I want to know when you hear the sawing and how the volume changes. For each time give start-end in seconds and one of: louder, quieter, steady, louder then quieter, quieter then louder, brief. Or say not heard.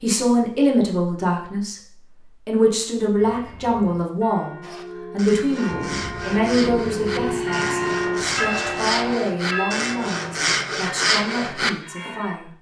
4.6-11.7 louder.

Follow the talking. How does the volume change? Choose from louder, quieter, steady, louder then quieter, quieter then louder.
quieter.